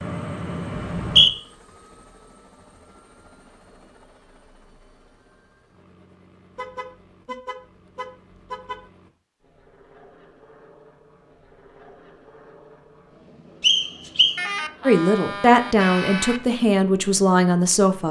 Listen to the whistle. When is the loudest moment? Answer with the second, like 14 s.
1 s.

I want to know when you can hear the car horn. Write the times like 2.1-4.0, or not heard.
0.0-1.3, 6.5-8.8, 14.3-16.4.